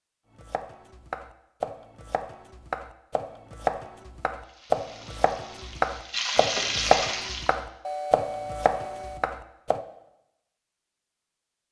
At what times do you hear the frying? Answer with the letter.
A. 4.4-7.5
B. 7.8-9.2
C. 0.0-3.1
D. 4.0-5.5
A.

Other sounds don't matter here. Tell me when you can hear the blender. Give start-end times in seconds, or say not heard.
not heard.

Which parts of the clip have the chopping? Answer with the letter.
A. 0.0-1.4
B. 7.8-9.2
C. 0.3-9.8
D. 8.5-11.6
C.